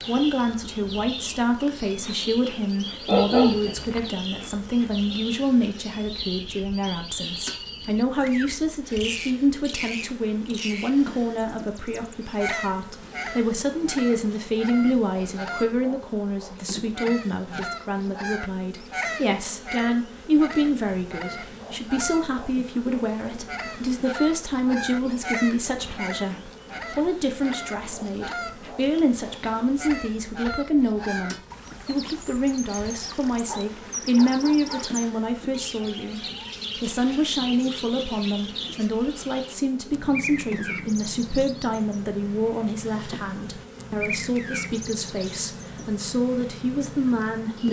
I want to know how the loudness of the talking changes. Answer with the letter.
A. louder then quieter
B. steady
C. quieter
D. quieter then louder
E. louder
B.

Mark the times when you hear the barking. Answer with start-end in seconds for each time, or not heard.
3.0-4.0, 33.5-35.0.